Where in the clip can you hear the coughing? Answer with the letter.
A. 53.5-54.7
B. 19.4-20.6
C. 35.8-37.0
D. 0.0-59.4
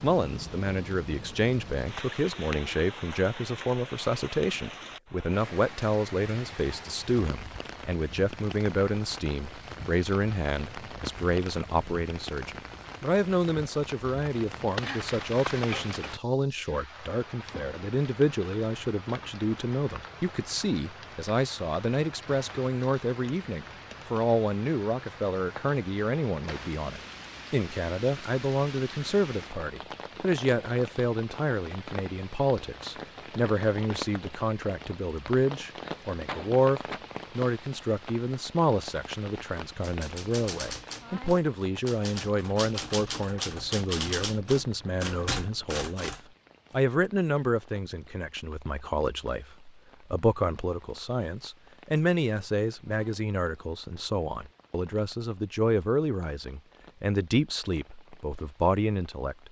C.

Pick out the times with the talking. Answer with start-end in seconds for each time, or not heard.
0.0-59.4.